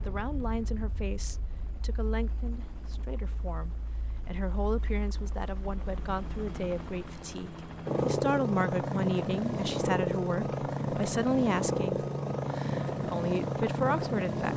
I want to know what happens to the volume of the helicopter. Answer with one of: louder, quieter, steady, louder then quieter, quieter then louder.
louder.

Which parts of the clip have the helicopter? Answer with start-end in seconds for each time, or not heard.
0.0-14.5.